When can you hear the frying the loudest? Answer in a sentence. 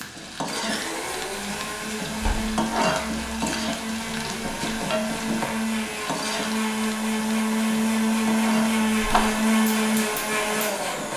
The loudest moment of the frying is at 3 seconds.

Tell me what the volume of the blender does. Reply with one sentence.
The loudness of the blender goes up.